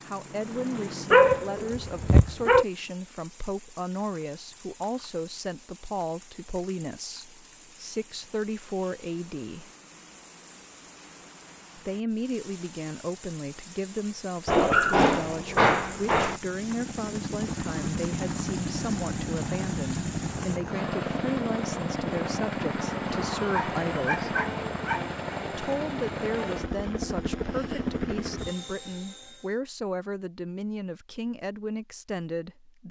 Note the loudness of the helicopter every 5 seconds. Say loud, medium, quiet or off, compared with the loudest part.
medium, off, off, loud, loud, loud, off.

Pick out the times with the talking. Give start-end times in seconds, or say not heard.
0.1-9.7, 11.8-24.4, 25.5-32.8.